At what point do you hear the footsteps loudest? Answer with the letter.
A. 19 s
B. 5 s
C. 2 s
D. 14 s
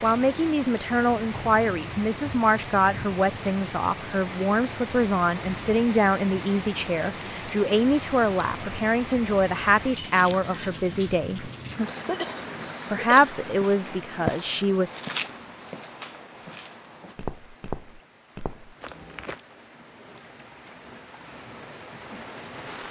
D.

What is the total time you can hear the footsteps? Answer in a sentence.
The footsteps can be heard for 6 seconds in total.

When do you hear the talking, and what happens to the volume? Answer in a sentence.
You can hear the talking from 0.0 to 11.5 s, at a steady volume; and briefly from 12.9 to 14.9 s.